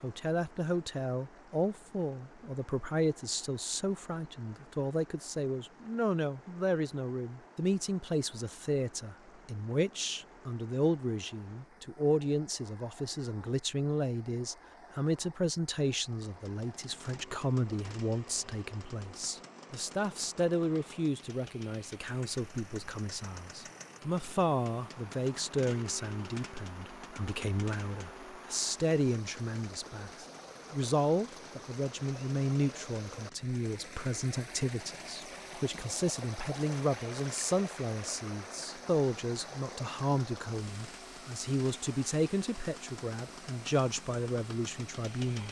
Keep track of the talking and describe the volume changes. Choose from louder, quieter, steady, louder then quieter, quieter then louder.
steady.